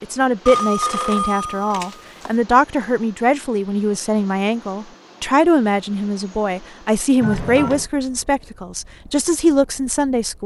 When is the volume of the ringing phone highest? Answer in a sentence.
The volume of the ringing phone peaks at 1 second.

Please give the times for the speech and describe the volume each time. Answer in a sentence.
The speech can be heard from 0.0 to 10.4 s, at a steady volume.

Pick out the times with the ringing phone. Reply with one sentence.
You can hear the ringing phone from 0.5 to 2.3 s and from 7.2 to 7.8 s.